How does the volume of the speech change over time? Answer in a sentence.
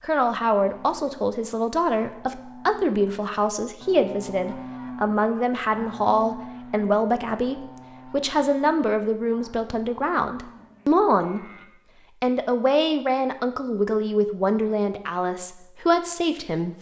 The loudness of the speech stays about the same.